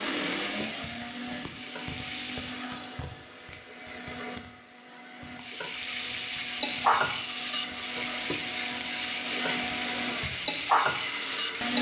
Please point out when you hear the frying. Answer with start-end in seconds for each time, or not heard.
0.0-2.8, 5.3-11.7.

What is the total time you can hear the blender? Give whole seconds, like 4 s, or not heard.
12 s.